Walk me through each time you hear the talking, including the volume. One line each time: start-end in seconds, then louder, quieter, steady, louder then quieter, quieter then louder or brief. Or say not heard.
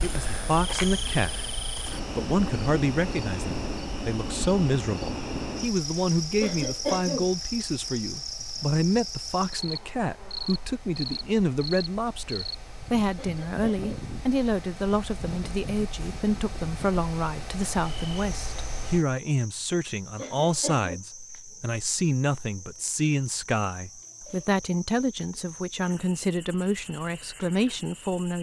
0.0-28.3 steady.